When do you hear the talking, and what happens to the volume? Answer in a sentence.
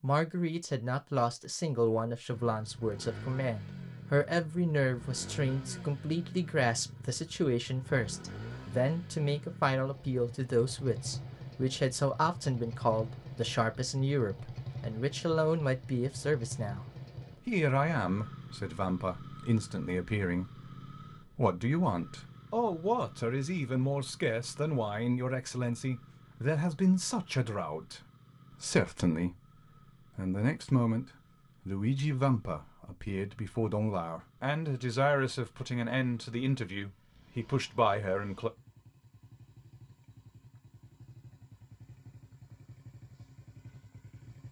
The talking can be heard from 0.0 to 38.5 s, at a steady volume.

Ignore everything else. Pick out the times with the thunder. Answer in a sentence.
You can't hear the thunder here.